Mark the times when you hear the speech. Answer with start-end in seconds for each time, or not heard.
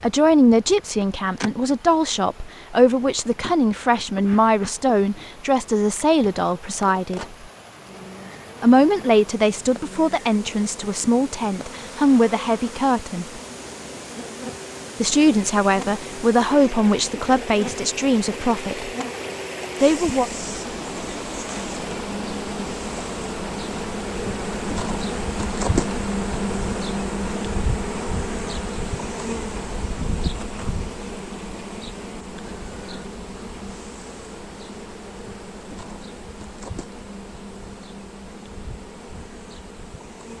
0.0-7.3, 8.6-13.4, 15.0-18.9, 19.8-20.3.